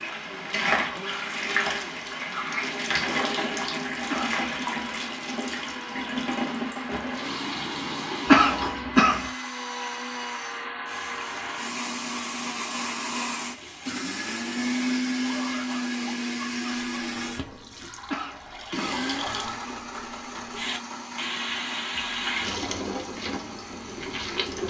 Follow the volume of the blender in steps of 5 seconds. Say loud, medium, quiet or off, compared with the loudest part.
medium, medium, loud, loud, medium.